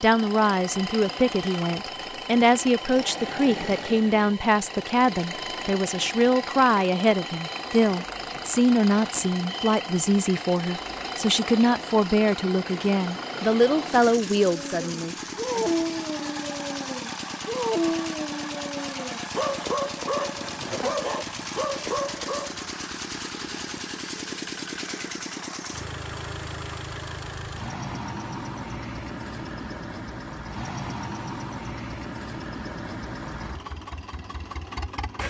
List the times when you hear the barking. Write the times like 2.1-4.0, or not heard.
14.4-22.6.